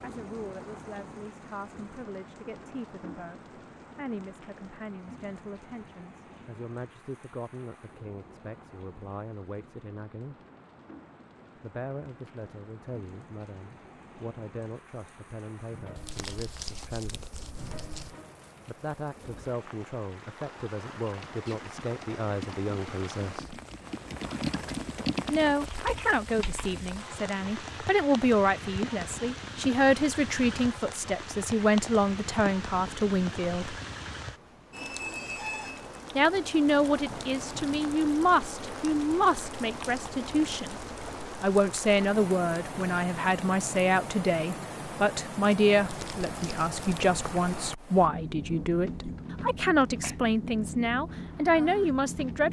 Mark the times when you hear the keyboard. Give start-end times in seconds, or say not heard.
21.1-26.8.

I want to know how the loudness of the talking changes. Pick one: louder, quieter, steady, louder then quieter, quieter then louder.
louder.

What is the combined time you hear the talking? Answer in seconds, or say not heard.
45 s.